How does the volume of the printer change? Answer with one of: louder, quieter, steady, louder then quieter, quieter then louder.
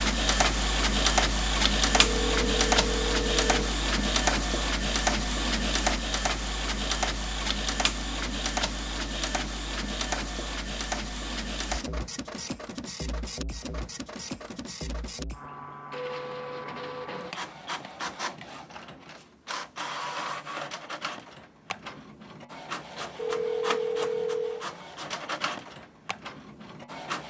quieter.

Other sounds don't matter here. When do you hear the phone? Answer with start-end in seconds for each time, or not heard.
1.9-3.8, 23.1-24.7.